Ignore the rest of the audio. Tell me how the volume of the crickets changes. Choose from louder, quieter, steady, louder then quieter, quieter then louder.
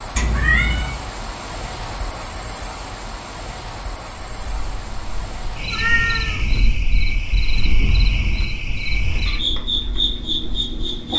louder.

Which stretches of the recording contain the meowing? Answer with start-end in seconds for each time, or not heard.
0.1-0.9, 5.7-6.7.